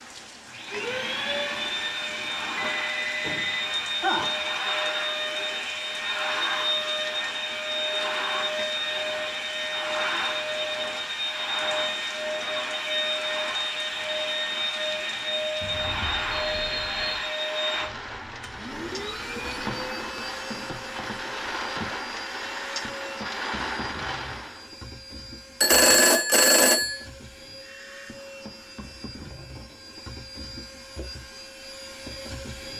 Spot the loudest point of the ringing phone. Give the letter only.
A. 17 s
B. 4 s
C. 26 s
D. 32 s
C.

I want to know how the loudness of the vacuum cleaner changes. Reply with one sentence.
The volume of the vacuum cleaner goes down.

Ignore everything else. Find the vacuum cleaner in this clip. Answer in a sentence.
You can hear the vacuum cleaner from 0.0 to 32.7 s.